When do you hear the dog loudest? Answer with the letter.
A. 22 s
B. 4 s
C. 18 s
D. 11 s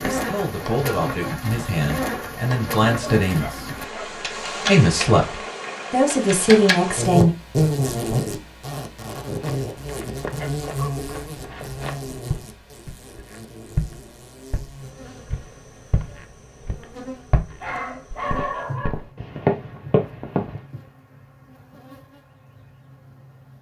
C.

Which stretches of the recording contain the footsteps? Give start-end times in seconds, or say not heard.
9.2-20.6.